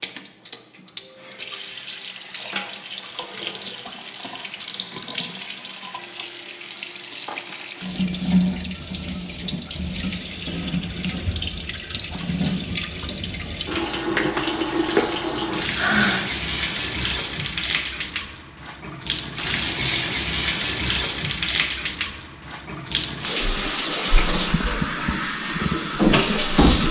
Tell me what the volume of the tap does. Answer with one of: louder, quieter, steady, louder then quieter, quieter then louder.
louder.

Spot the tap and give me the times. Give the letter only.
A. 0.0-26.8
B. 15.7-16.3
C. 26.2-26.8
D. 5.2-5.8
A.